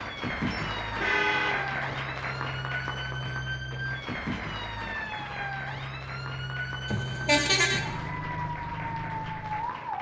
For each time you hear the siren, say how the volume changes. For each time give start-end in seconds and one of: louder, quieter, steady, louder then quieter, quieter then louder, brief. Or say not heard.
0.0-9.9 steady.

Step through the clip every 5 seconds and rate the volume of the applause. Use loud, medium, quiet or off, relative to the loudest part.
loud, medium.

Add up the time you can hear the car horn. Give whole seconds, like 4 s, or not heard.
2 s.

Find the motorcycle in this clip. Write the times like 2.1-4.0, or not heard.
not heard.